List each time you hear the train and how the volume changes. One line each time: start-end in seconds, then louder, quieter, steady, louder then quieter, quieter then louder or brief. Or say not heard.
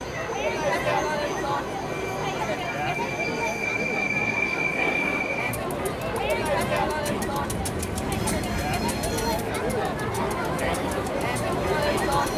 0.0-12.3 louder then quieter.